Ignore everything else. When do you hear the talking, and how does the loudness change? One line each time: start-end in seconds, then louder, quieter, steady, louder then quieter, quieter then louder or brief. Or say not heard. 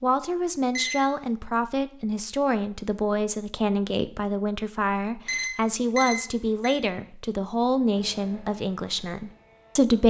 0.0-10.0 steady.